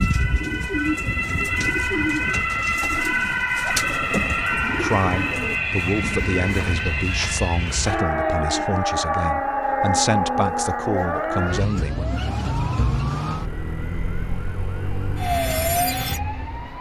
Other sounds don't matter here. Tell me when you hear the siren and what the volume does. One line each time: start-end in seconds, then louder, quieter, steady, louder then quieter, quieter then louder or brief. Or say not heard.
0.0-16.7 steady.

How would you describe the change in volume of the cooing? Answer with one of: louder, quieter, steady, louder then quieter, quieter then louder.
steady.